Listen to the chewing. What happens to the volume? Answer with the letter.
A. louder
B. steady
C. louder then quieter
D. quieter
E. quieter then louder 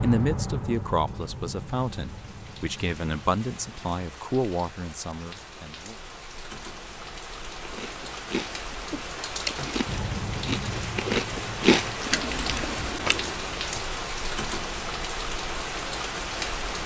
C.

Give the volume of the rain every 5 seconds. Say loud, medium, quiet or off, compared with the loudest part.
medium, medium, loud, loud.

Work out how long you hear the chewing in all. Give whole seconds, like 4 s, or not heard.
6 s.